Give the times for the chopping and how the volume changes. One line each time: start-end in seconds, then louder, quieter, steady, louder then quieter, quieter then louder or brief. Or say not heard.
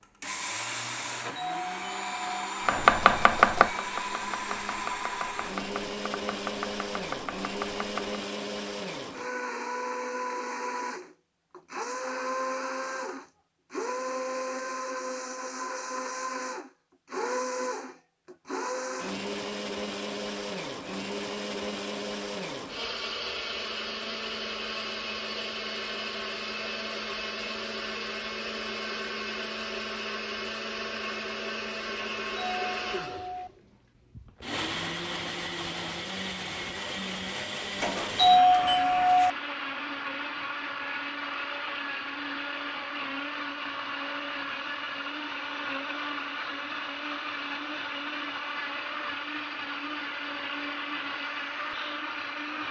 2.6-8.2 quieter.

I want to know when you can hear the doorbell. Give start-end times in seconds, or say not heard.
0.9-2.2, 31.9-33.5, 37.8-39.3.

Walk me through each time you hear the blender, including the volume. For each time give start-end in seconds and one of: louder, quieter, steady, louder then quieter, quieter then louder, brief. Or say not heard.
0.0-52.6 steady.